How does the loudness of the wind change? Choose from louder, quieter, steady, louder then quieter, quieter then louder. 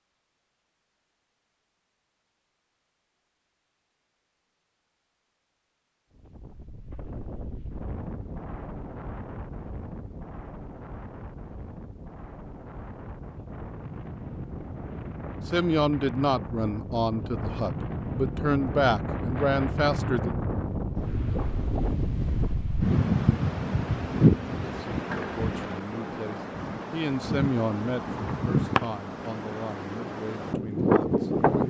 louder.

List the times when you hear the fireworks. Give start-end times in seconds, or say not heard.
not heard.